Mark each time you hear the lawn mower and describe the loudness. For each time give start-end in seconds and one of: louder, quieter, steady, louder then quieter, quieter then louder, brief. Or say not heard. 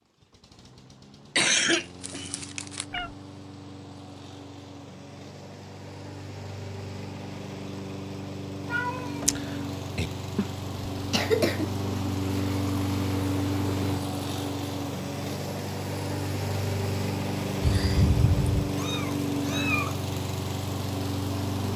0.0-21.7 louder.